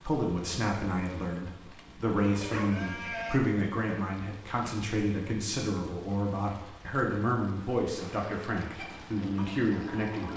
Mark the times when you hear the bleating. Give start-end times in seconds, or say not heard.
2.1-3.4.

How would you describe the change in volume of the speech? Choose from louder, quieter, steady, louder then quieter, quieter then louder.
steady.